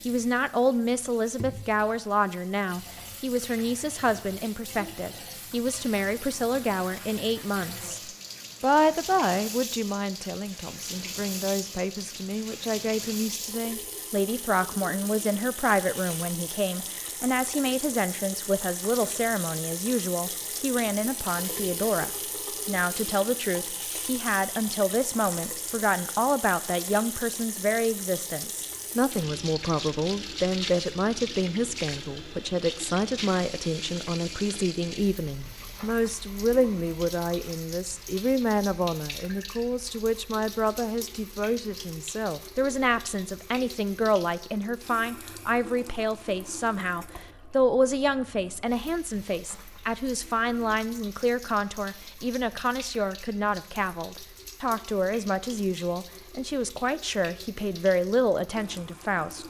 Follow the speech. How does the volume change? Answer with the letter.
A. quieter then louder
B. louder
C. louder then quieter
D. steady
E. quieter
D.